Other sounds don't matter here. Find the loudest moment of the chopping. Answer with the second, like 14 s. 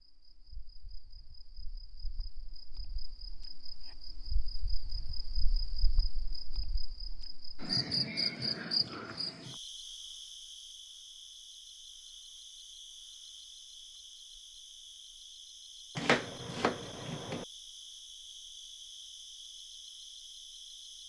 16 s.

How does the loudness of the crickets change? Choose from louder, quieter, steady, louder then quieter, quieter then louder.
louder then quieter.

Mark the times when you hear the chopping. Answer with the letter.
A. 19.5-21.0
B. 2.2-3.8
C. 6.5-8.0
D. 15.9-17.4
D.